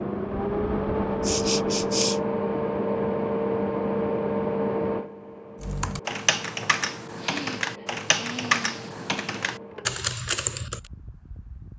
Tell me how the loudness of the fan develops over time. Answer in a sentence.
The loudness of the fan goes down.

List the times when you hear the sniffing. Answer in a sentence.
The sniffing can be heard from 1.2 to 2.2 s and from 7.2 to 9.0 s.